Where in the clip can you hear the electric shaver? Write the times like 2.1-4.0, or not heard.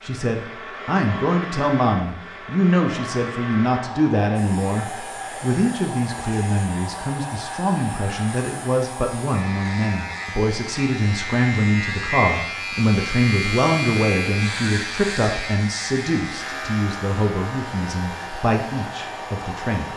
4.3-19.9.